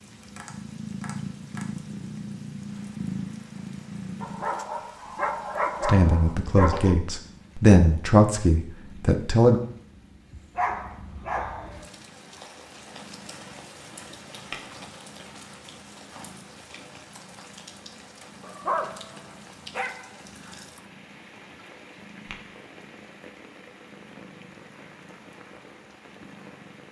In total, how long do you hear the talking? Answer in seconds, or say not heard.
4 s.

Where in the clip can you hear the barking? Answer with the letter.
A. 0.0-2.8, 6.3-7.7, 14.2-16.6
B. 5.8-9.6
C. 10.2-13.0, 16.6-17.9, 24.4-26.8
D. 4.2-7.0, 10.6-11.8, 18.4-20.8
D.